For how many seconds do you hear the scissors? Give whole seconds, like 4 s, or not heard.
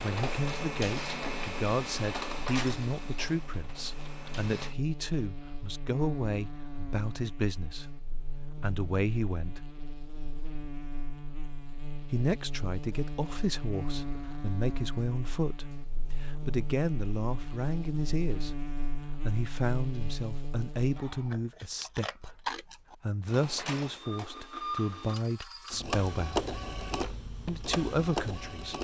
2 s.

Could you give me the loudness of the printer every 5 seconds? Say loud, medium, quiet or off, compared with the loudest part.
loud, off, off, off, loud, loud.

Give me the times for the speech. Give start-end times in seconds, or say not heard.
0.0-9.6, 12.1-18.6, 19.1-26.4, 27.4-28.7.